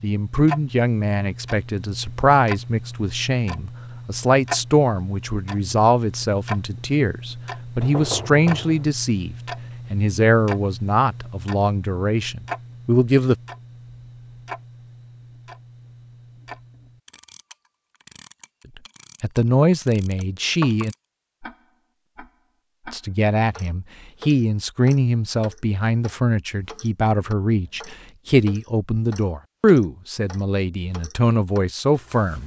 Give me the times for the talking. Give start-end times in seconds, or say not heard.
0.0-13.3, 19.2-20.9, 22.9-32.4.